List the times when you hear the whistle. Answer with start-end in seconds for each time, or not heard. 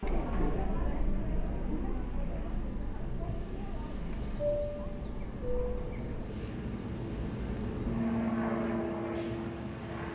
not heard.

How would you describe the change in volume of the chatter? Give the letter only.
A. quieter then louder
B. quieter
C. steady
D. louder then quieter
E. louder
B.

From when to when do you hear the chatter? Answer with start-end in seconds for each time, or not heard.
0.0-6.3.